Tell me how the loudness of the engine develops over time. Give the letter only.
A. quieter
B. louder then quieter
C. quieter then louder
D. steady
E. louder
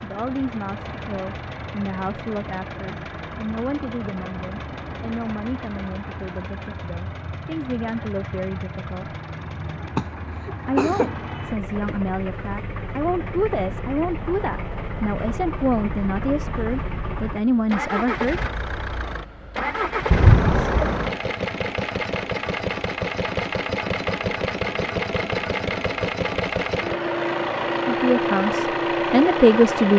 E.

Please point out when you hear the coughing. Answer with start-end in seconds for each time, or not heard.
9.9-11.1, 20.1-21.1.